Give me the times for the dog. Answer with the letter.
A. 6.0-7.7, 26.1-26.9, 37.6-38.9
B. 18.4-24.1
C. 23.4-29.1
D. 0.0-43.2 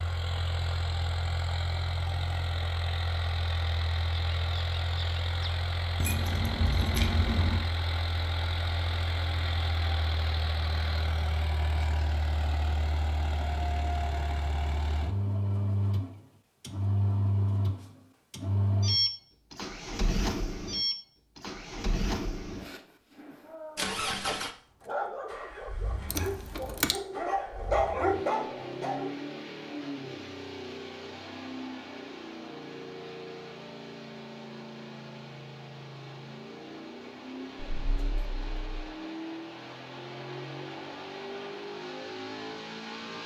C.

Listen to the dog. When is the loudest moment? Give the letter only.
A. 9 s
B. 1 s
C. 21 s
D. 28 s
D.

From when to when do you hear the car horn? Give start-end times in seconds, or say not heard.
not heard.